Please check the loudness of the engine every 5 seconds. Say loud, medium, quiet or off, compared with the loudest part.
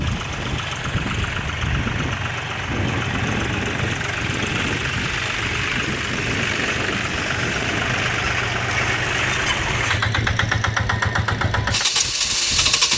medium, loud, loud.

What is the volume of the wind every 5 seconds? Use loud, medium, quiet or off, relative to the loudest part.
loud, loud, medium.